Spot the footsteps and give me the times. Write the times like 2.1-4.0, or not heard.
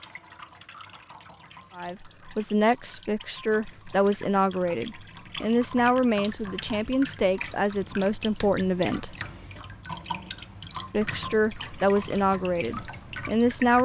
not heard.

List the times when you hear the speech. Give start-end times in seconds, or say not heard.
1.8-9.2, 10.9-13.7.